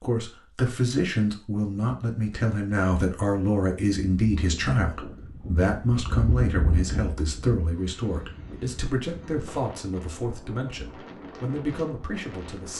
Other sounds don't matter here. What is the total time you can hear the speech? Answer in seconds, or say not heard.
13 s.